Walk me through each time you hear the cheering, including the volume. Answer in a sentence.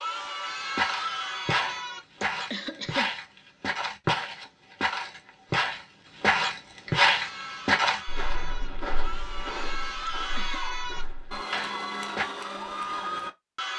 You can hear the cheering briefly from 0.0 to 2.0 s; and from 7.1 to 13.7 s, getting louder.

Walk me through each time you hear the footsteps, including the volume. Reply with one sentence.
The footsteps can be heard from 0.7 to 12.2 s, getting louder then quieter.